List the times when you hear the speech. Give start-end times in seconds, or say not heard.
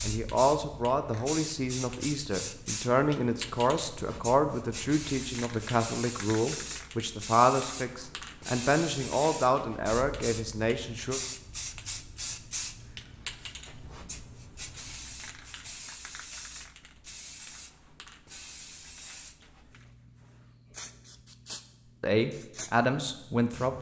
0.1-11.2, 22.0-23.7.